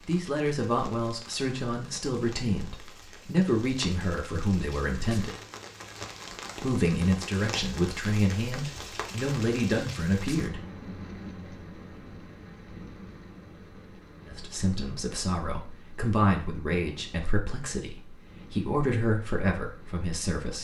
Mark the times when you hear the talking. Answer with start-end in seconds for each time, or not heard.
0.1-5.4, 6.5-10.6, 14.2-20.5.